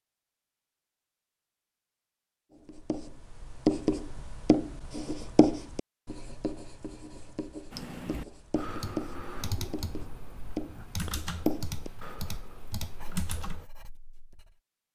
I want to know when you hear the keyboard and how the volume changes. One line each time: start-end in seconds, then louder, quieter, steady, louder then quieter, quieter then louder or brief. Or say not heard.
7.7-13.7 steady.